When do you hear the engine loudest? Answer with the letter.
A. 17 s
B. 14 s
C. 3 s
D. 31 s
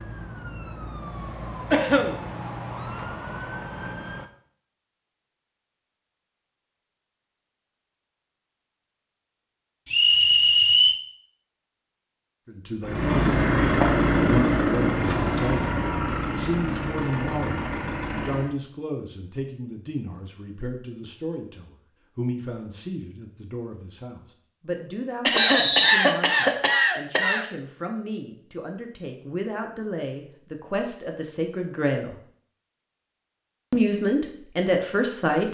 B.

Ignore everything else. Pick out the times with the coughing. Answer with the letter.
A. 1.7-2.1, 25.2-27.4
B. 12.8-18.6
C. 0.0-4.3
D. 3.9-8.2
A.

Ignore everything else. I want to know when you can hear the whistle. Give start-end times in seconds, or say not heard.
9.9-10.9, 25.4-25.9.